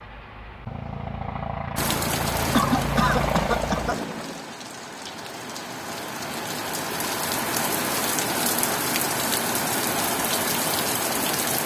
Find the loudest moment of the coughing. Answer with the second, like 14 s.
3 s.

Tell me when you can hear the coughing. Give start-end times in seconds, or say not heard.
2.5-4.0.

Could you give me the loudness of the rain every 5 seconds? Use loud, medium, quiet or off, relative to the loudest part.
medium, loud, loud.